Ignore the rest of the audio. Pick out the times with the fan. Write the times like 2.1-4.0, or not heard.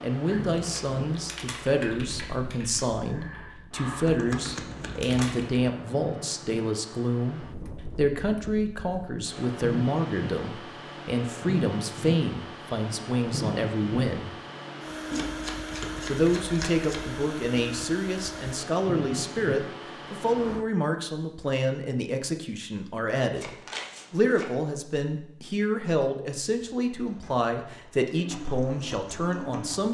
0.0-20.6.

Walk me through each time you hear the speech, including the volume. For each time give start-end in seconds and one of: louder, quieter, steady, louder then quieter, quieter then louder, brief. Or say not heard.
0.0-14.3 steady
16.1-29.8 steady.